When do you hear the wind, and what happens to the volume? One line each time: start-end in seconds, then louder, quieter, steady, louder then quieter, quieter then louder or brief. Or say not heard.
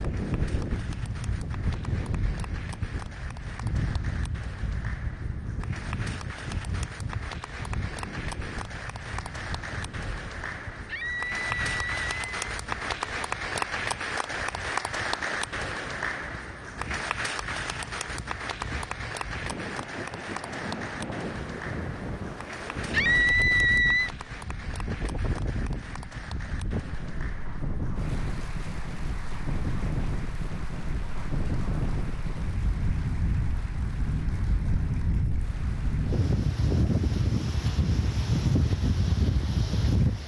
0.0-40.2 quieter then louder.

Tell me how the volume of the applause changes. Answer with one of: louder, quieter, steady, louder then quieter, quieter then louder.
louder then quieter.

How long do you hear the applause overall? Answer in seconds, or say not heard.
40 s.